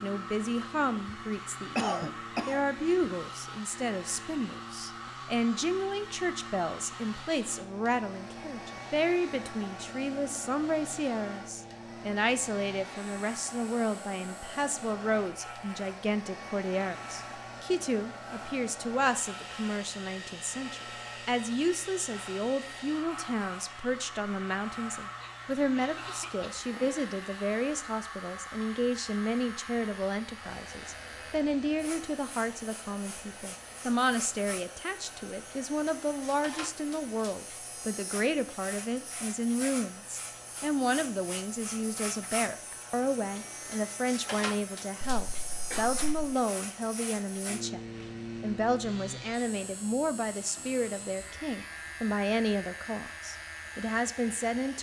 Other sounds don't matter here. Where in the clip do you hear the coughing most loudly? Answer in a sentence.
The volume of the coughing peaks at 2 seconds.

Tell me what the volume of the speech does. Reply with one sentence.
The loudness of the speech stays about the same.